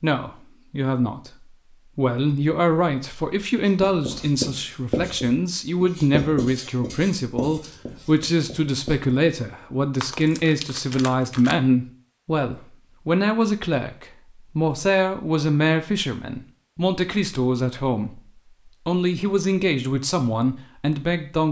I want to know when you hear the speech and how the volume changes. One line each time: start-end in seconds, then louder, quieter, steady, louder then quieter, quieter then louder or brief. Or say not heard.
0.0-21.4 steady.